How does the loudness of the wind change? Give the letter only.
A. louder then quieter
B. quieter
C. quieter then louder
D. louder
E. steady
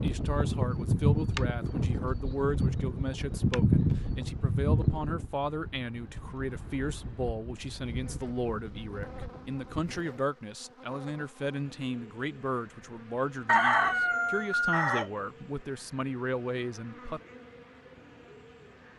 B.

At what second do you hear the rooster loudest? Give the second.
14 s.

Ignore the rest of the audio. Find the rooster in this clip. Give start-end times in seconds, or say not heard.
13.4-15.1.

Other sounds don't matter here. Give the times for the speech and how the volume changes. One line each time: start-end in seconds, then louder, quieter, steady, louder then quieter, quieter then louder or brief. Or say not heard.
0.0-17.2 steady.